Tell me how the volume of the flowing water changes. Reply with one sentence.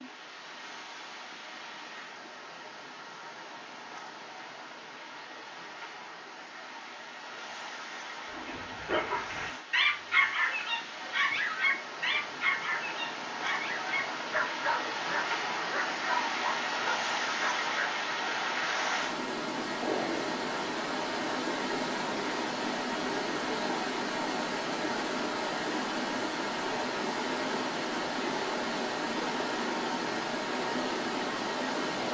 The loudness of the flowing water goes up.